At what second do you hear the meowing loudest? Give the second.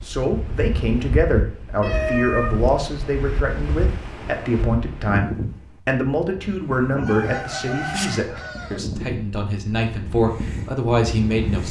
2 s.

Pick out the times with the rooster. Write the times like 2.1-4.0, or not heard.
7.0-8.8.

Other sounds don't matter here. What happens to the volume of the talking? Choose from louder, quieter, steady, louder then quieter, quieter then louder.
steady.